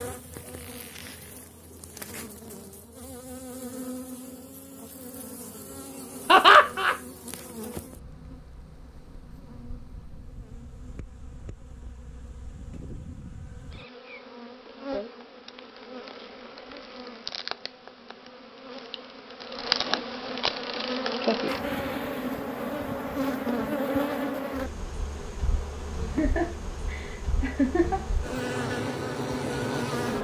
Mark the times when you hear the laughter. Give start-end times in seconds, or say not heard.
6.2-7.0, 26.1-28.0.